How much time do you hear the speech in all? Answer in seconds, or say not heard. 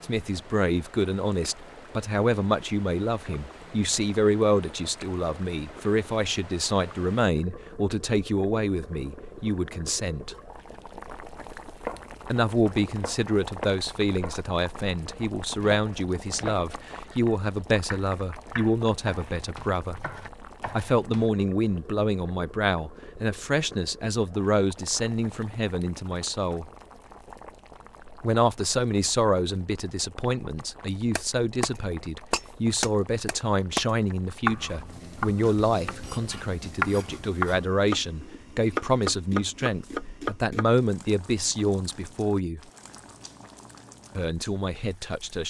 40 s.